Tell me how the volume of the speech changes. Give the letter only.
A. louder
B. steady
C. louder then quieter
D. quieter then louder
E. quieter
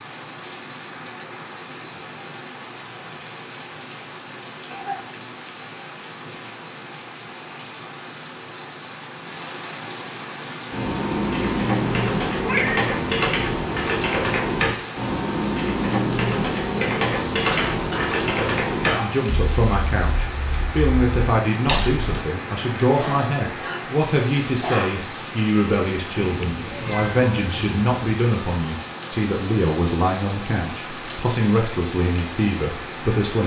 B.